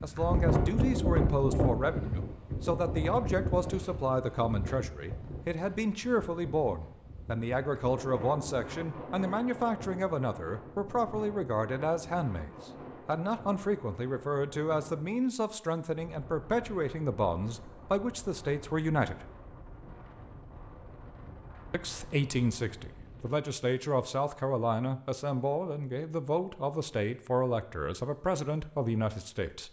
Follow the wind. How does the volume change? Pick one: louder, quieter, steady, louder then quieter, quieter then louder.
quieter.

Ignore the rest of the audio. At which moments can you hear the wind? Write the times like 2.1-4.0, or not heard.
0.0-23.3.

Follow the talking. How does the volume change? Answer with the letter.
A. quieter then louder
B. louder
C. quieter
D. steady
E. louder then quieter
D.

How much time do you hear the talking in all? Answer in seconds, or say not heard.
27 s.